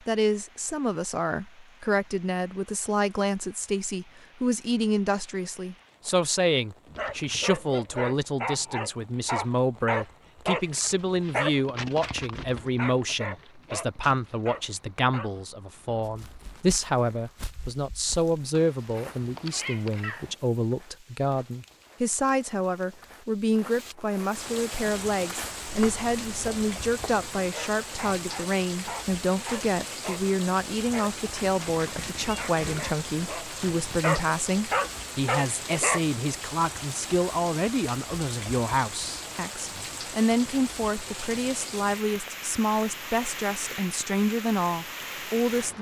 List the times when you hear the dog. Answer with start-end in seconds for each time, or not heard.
6.8-15.4, 27.4-36.0.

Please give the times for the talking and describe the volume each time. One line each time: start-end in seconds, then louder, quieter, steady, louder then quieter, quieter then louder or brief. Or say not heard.
0.1-45.7 steady.